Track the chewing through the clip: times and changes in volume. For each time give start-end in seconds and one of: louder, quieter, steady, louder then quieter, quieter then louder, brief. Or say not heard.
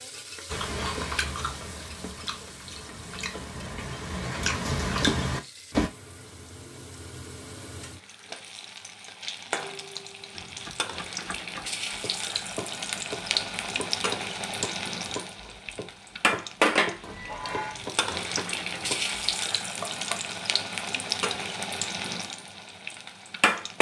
0.5-5.9 quieter then louder.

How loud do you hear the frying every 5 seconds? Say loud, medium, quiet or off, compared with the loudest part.
quiet, medium, loud, loud, loud.